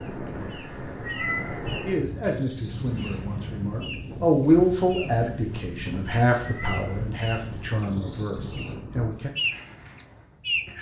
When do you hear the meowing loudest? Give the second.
1 s.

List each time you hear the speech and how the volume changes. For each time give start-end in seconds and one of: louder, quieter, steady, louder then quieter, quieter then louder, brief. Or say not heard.
1.7-9.3 louder then quieter.